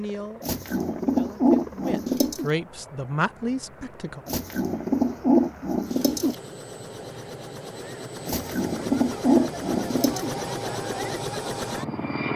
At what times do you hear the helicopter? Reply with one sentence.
The helicopter can be heard from 0.0 to 12.3 s.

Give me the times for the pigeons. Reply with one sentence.
The pigeons can be heard from 0.4 to 2.5 s, from 4.2 to 6.3 s and from 8.2 to 10.3 s.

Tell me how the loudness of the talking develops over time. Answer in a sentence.
The loudness of the talking goes up.